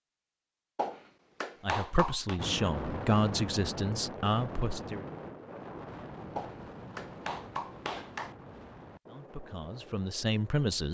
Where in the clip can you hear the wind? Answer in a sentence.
The wind can be heard from 2.4 to 10.8 s.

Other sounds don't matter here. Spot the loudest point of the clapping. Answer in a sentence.
The volume of the clapping peaks at 2 seconds.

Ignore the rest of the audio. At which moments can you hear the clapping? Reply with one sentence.
The clapping can be heard from 0.8 to 2.4 s and from 6.3 to 8.3 s.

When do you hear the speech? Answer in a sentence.
The speech can be heard from 1.6 to 5.0 s and from 9.1 to 10.8 s.